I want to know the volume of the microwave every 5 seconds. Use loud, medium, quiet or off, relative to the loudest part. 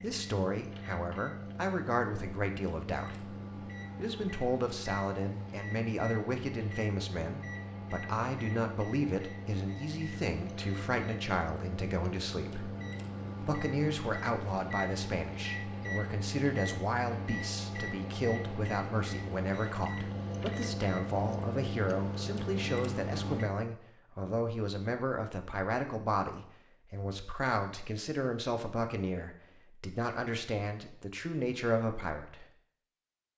medium, medium, loud, loud, loud, off, off.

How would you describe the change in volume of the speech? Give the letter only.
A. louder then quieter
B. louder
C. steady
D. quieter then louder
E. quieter
C.